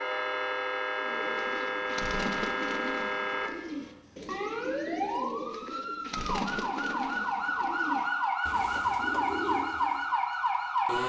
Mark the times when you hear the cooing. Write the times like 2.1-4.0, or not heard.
0.9-10.1.